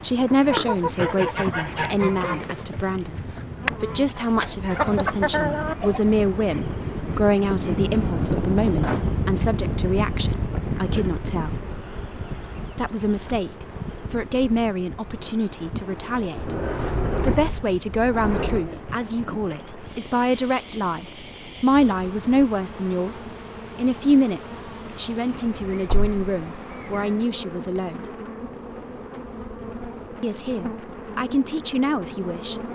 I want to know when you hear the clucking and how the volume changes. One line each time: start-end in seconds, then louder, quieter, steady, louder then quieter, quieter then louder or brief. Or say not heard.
0.3-6.0 quieter then louder.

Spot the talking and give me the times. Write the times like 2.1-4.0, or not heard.
0.0-11.6, 12.8-16.6, 17.2-28.1, 30.2-32.5.